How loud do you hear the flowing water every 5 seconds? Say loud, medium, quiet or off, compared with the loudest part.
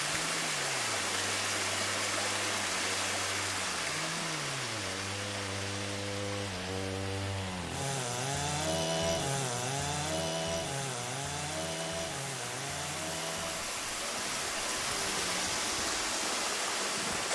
loud, medium, medium, loud.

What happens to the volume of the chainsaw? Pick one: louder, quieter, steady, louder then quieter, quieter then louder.
louder then quieter.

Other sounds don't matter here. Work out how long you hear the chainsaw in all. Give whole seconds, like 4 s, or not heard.
17 s.